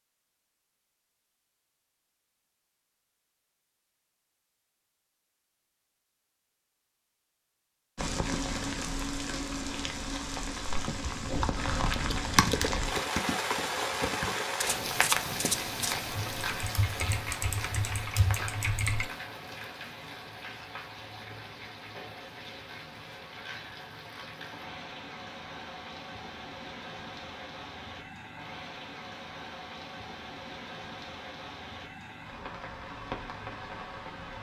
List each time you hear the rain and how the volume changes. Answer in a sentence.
You can hear the rain from 8.0 to 34.3 s, getting quieter.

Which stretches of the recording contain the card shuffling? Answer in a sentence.
The card shuffling can be heard from 14.6 to 16.1 s.